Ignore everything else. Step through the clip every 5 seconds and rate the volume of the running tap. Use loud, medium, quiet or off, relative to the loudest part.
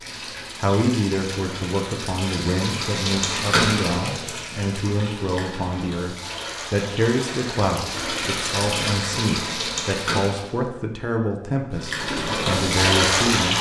medium, medium, loud.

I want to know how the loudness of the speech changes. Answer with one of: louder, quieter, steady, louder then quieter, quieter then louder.
steady.